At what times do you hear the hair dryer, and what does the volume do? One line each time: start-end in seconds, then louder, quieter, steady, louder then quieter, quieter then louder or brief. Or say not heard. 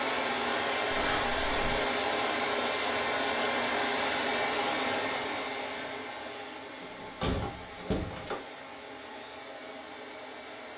0.0-10.7 quieter.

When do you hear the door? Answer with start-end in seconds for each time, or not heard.
0.9-1.8, 6.8-8.4.